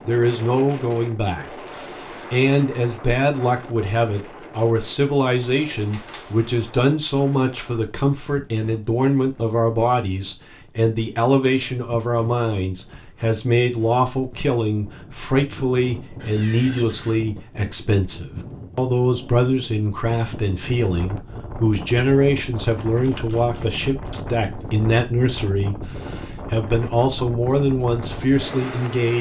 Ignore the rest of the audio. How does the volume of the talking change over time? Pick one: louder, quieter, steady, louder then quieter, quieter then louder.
steady.